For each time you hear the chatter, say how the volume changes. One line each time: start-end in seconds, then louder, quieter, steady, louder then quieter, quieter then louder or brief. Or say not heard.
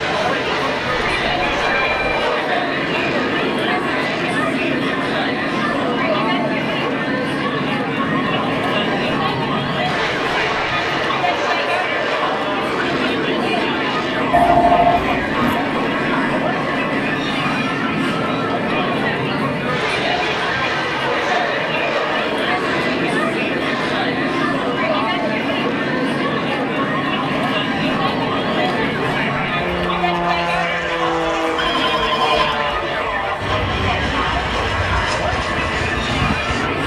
0.0-36.8 steady.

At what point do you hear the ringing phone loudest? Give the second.
15 s.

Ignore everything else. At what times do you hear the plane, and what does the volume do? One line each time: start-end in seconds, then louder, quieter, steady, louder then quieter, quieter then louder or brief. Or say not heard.
0.0-36.8 steady.